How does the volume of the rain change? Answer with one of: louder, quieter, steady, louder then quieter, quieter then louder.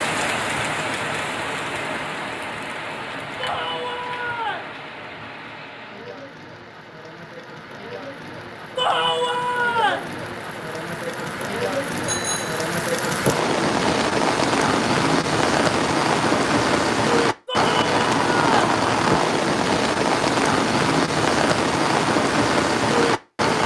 quieter then louder.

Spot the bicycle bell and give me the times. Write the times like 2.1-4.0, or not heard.
12.1-12.6.